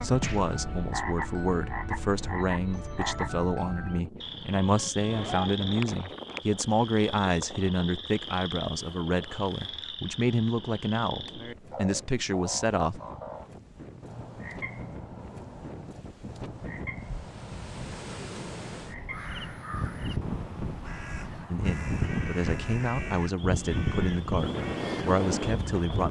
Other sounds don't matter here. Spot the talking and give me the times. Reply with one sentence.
You can hear the talking from 0.0 to 13.0 s and from 21.5 to 26.0 s.